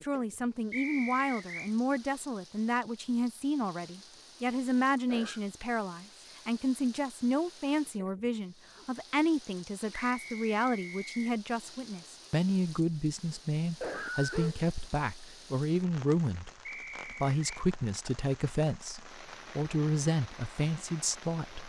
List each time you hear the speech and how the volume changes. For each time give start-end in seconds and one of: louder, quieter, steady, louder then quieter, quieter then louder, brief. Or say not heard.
0.0-21.6 steady.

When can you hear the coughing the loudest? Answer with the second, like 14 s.
14 s.